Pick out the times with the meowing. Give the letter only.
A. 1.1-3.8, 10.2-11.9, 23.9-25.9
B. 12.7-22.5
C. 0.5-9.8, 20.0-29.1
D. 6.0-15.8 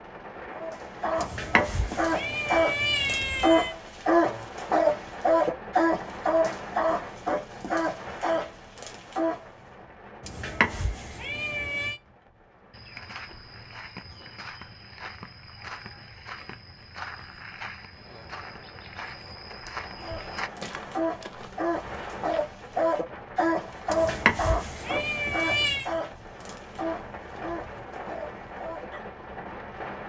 A.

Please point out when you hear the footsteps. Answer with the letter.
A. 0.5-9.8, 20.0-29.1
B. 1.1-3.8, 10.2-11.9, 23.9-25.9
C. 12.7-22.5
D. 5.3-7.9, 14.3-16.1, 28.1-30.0
C.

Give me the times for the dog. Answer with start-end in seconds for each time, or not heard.
0.5-9.8, 20.0-29.1.